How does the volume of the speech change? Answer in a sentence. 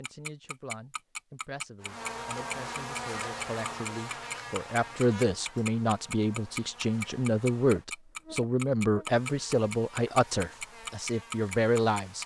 The volume of the speech goes up.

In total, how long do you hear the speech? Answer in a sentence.
You can hear the speech for 12 seconds altogether.